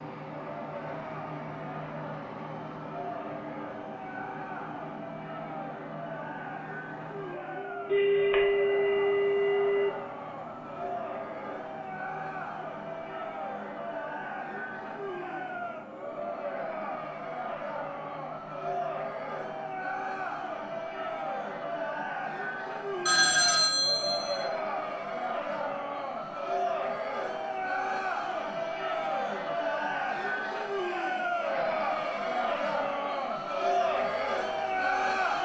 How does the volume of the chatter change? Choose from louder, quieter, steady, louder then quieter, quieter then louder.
louder.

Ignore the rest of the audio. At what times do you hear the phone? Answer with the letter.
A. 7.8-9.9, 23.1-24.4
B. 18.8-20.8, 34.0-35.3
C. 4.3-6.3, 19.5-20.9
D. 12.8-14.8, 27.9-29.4
A.